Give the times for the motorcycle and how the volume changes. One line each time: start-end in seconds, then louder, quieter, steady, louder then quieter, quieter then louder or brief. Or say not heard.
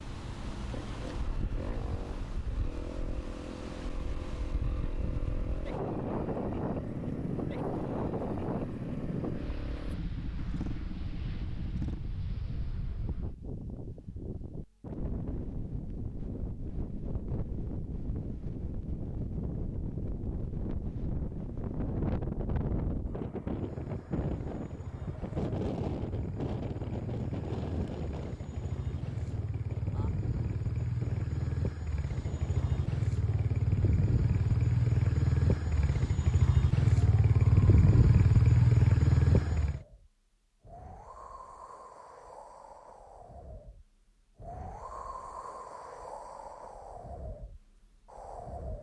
0.0-12.1 steady
23.4-39.9 louder.